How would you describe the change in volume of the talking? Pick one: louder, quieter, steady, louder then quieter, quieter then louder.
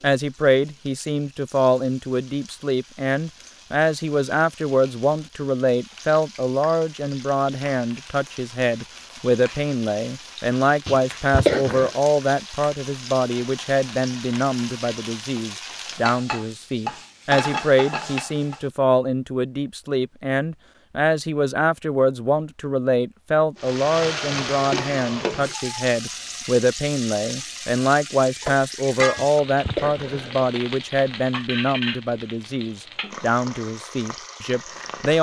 steady.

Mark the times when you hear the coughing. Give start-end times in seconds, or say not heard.
10.8-11.9, 29.1-30.5.